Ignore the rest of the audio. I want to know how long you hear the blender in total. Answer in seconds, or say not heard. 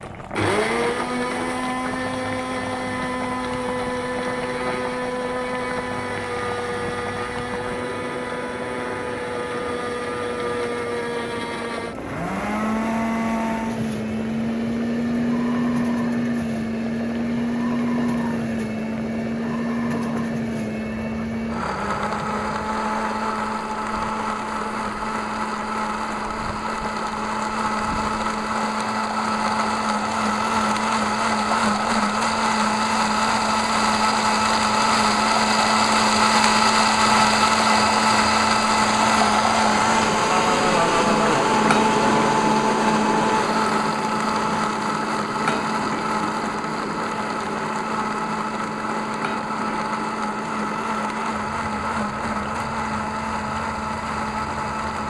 55 s.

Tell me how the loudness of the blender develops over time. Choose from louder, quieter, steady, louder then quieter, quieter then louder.
louder then quieter.